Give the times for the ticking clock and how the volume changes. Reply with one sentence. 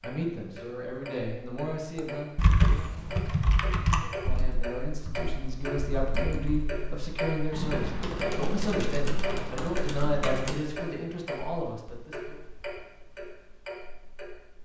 The ticking clock can be heard from 0.0 to 14.6 s, getting louder then quieter.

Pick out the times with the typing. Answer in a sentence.
The typing can be heard from 1.9 to 10.6 s.